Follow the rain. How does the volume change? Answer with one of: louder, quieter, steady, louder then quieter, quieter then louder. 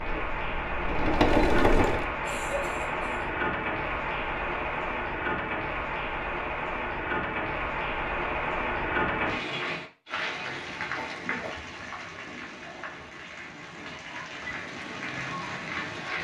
quieter.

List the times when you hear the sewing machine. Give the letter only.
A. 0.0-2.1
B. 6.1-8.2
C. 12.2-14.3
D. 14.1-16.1
A.